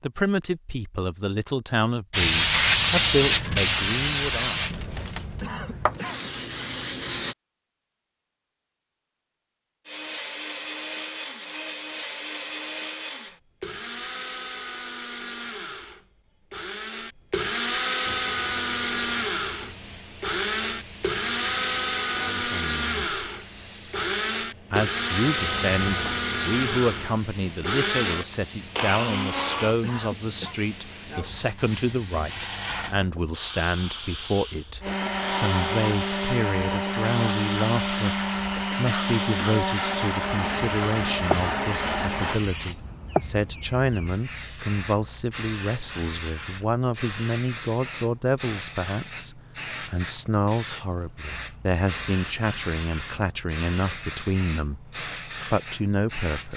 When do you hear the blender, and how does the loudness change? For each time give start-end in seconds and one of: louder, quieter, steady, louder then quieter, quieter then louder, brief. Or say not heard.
9.8-29.8 louder
34.8-42.4 steady.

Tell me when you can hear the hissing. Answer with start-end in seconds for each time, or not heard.
2.1-7.3, 18.1-56.5.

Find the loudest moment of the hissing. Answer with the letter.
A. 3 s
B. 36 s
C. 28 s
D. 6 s
A.